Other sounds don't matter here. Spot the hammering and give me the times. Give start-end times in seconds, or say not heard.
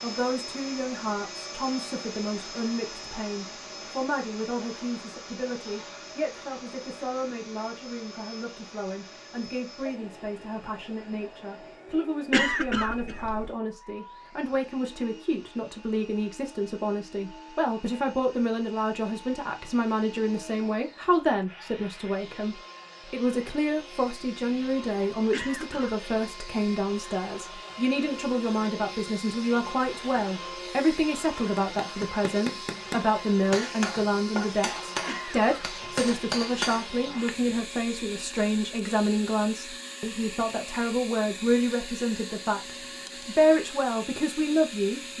31.6-37.5.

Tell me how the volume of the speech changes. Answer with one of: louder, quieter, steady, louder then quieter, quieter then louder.
louder.